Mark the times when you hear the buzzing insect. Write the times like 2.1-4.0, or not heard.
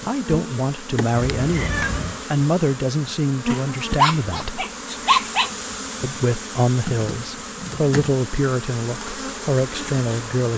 0.0-10.5.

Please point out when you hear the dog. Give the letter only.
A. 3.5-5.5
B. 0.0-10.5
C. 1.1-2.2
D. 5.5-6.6
A.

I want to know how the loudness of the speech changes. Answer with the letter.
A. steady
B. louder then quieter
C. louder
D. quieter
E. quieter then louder
A.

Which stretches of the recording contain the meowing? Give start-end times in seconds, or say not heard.
1.1-2.2.